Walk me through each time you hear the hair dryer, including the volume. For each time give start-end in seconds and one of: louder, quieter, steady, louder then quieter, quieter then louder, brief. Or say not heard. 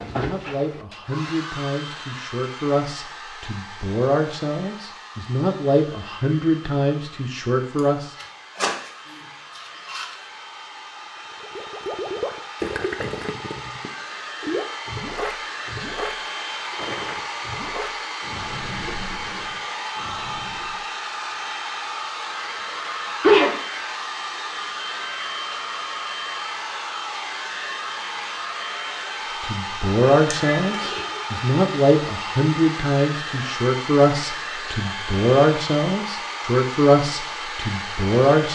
0.0-38.4 louder.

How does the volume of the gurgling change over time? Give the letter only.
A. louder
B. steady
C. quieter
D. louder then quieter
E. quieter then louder
C.